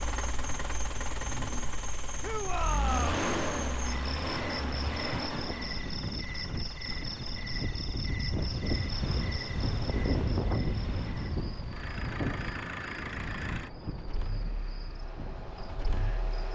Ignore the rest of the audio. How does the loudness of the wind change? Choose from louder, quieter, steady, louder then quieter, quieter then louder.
louder then quieter.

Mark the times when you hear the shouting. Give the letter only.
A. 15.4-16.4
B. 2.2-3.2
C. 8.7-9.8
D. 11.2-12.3
B.